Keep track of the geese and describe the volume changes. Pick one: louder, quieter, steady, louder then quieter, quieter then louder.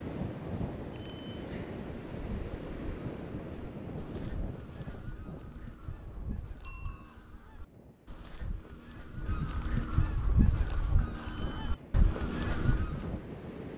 louder.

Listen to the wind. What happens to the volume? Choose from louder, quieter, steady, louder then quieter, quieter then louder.
quieter then louder.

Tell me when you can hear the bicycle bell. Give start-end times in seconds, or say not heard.
0.9-1.4, 6.6-7.2, 11.2-11.8.